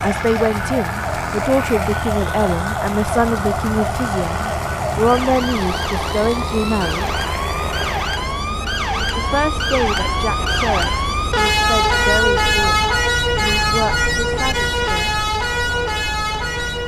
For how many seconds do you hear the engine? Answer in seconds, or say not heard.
8 s.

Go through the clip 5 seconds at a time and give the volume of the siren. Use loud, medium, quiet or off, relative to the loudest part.
medium, medium, loud, loud.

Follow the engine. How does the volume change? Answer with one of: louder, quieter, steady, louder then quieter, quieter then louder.
steady.